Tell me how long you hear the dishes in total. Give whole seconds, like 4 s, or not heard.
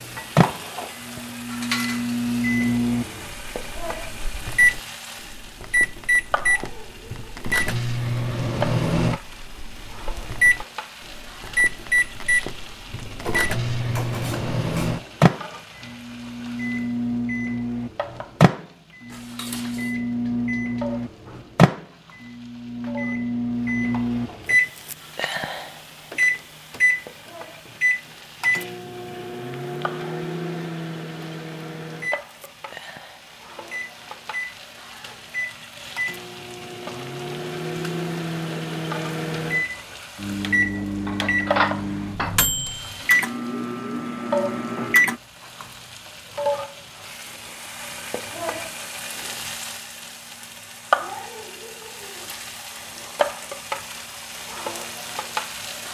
5 s.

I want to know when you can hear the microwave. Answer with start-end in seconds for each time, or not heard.
0.0-45.2.